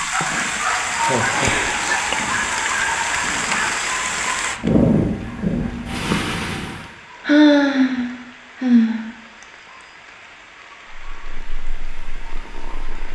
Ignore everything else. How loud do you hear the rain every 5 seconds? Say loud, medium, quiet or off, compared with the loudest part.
loud, quiet, quiet.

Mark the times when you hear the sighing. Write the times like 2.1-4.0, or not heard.
0.2-2.0, 7.2-9.1.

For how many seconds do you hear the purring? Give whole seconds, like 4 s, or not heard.
9 s.